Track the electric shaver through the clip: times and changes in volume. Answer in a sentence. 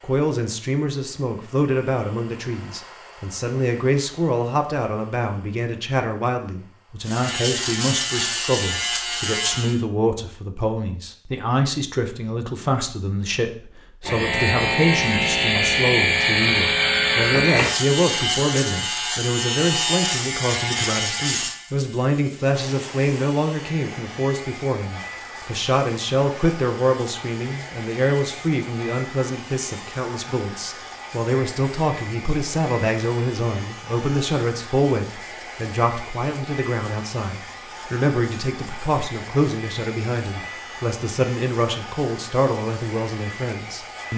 You can hear the electric shaver briefly from 7.0 to 9.8 s; and from 14.1 to 44.1 s, getting quieter.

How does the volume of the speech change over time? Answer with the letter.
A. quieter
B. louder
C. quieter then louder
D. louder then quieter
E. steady
E.